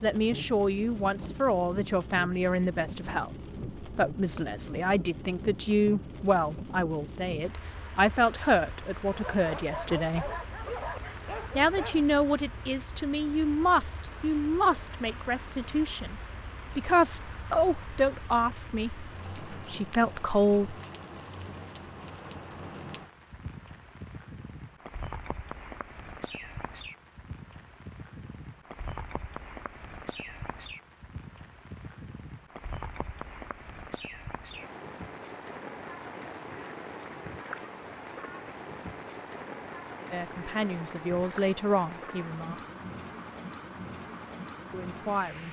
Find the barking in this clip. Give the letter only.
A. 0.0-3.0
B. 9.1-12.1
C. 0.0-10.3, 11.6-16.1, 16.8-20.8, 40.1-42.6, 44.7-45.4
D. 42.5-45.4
B.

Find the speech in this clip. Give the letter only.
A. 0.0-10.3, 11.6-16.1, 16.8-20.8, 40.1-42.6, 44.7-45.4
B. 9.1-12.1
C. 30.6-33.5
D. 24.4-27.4
A.